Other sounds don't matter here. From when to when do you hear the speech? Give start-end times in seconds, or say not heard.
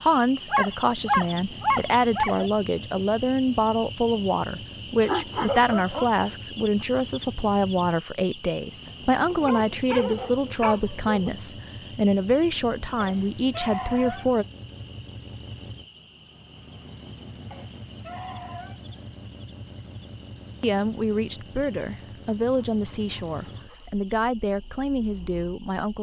0.0-14.4, 20.6-25.9.